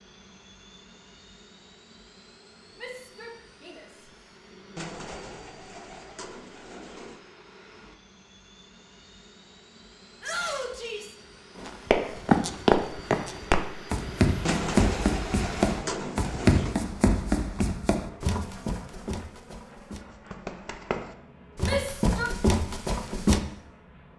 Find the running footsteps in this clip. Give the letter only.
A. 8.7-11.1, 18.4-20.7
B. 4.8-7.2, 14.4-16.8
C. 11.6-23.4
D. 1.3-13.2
C.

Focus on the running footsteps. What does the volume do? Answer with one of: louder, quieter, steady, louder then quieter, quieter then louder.
quieter then louder.